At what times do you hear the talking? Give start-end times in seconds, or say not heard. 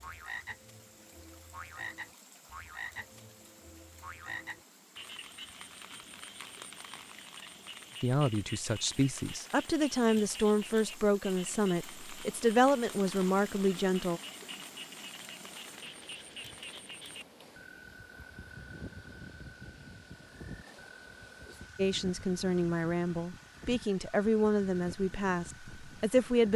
8.0-14.2, 21.8-26.5.